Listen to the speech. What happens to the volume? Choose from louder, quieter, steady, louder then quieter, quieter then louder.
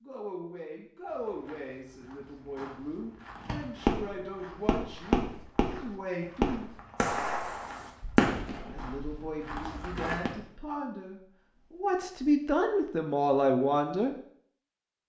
louder.